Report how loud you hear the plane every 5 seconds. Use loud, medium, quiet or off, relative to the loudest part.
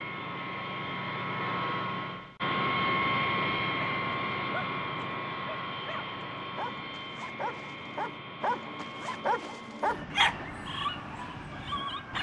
loud, medium, medium.